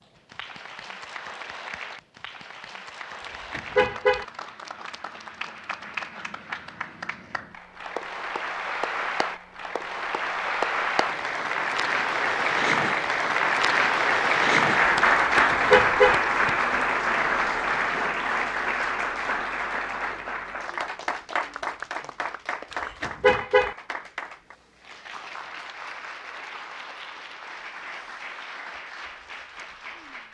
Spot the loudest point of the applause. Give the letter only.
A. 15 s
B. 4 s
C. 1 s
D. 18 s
A.